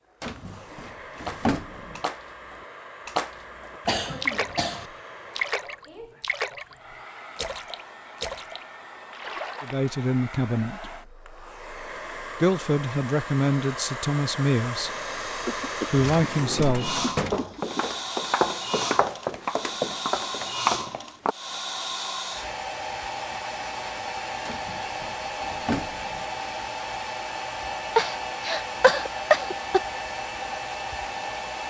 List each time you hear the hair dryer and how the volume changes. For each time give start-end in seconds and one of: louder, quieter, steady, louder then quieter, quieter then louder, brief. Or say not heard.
0.0-31.6 louder.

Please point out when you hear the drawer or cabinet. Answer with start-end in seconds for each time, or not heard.
0.2-2.0, 16.1-17.6, 24.4-26.2.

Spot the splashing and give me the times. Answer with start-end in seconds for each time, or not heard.
1.1-4.8, 5.3-6.8, 7.3-9.8.